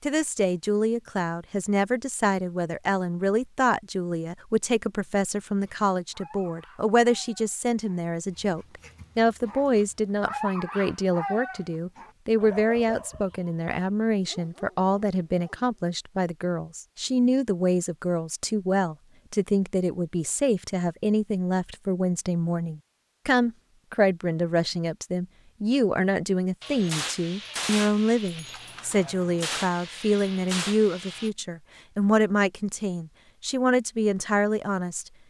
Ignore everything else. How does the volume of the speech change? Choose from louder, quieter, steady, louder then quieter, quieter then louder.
steady.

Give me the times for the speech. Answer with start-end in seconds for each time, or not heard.
0.0-35.1.